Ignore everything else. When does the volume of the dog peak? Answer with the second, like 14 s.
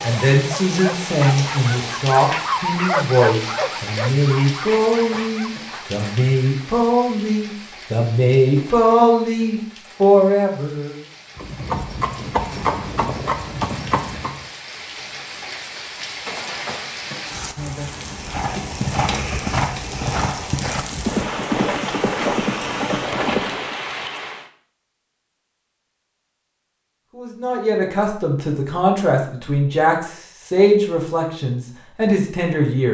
3 s.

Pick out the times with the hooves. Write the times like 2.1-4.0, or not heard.
11.3-14.4, 18.1-23.8.